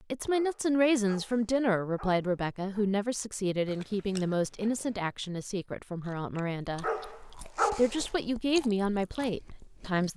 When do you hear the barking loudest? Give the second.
8 s.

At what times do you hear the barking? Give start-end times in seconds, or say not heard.
0.3-3.0, 6.8-8.1.